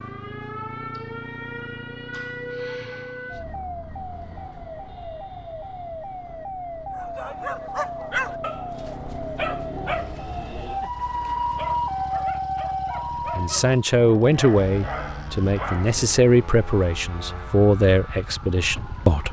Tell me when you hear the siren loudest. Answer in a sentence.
The loudest moment of the siren is at 12 seconds.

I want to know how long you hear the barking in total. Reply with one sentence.
The barking can be heard for 9 seconds in total.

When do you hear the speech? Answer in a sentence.
The speech can be heard from 13.3 to 19.2 s.